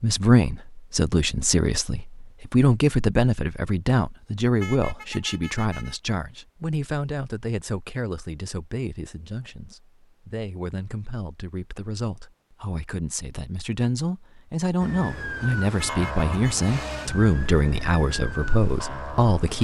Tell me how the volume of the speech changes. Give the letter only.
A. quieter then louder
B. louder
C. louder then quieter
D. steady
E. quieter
A.